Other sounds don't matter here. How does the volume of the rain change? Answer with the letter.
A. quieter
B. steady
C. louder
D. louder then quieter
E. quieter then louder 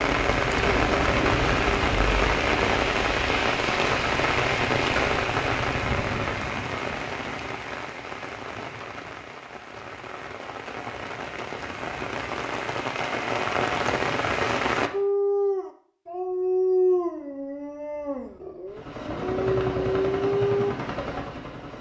E.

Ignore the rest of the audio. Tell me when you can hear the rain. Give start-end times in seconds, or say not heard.
0.0-14.9.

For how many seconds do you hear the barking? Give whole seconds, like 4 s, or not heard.
6 s.